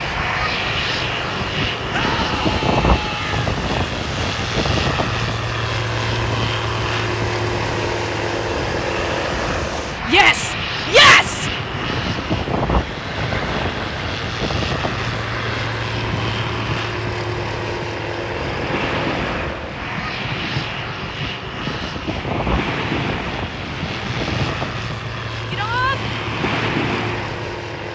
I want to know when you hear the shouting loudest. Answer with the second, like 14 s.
11 s.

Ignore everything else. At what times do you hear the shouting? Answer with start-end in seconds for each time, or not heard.
1.9-3.5, 10.1-11.4, 25.5-26.0.